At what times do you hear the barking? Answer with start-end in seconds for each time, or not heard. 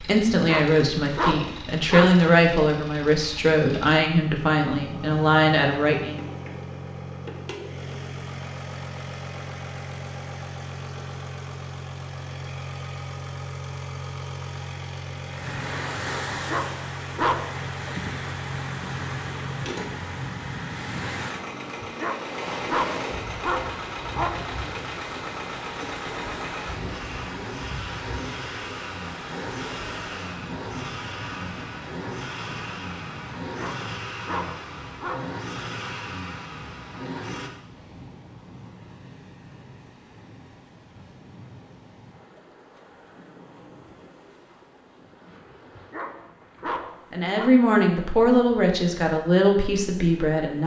0.3-2.2, 16.3-17.6, 21.8-24.4, 33.4-35.4, 45.8-47.5.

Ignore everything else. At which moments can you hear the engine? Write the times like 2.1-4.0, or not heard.
0.0-37.5.